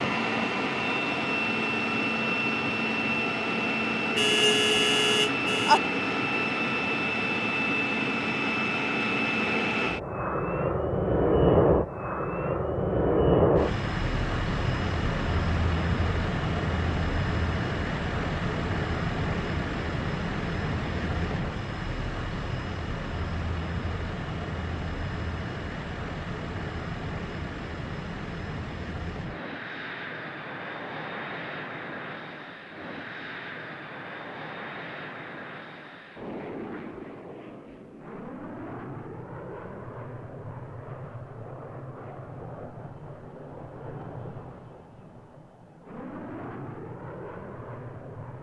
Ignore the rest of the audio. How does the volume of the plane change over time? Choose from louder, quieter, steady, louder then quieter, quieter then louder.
quieter.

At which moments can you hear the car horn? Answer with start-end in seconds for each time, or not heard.
4.2-5.8.